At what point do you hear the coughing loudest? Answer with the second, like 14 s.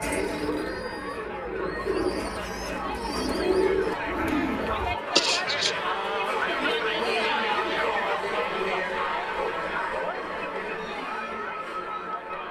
5 s.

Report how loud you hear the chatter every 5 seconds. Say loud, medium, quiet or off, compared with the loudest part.
medium, loud, medium.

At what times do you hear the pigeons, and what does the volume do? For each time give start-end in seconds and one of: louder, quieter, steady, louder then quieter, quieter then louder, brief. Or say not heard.
0.0-5.0 louder.